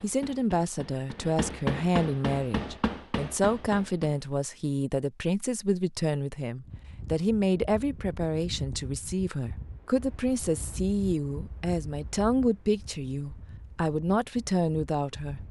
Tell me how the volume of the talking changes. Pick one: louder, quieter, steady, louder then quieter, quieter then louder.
steady.